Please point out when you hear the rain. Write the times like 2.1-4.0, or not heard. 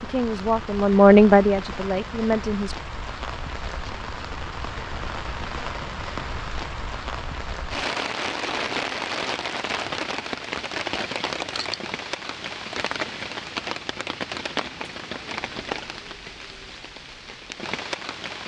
0.0-18.4.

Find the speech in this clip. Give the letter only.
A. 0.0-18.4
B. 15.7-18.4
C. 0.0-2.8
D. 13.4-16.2
C.